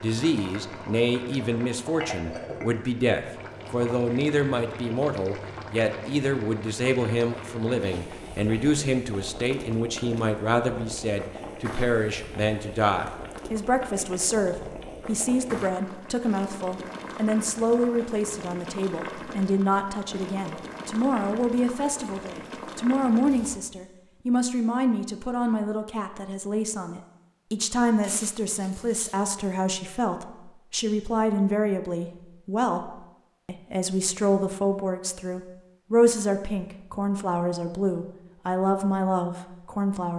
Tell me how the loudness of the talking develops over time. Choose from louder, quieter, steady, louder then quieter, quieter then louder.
steady.